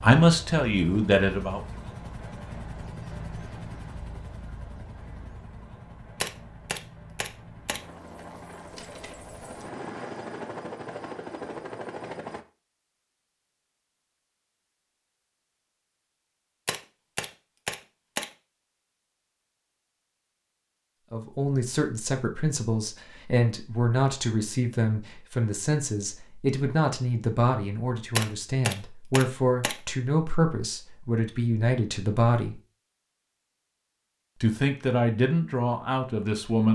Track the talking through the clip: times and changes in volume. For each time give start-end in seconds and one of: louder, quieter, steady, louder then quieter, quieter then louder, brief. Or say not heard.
0.0-1.6 brief
21.1-32.6 steady
34.4-36.7 brief.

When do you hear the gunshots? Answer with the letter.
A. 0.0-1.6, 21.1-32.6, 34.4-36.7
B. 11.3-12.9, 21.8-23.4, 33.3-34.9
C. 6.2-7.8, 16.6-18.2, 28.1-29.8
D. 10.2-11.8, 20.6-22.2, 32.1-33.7
C.